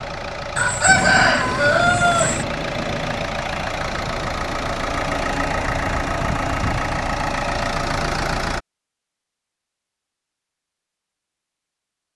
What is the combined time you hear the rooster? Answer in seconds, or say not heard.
2 s.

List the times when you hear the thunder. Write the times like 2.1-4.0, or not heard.
0.8-3.4.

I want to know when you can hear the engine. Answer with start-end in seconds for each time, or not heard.
0.0-8.6.